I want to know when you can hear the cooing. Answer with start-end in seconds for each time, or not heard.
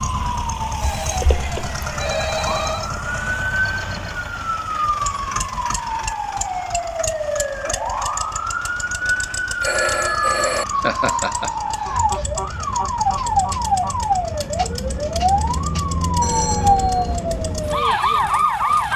not heard.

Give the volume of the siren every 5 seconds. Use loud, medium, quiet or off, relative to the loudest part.
medium, medium, loud, loud.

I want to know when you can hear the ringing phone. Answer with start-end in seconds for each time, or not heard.
0.8-2.9, 9.0-10.7, 16.2-17.2.